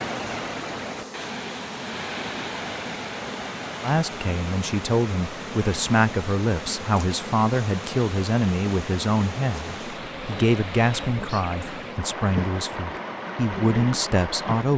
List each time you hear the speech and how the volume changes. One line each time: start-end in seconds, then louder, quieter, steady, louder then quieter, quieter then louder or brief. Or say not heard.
3.8-14.7 steady.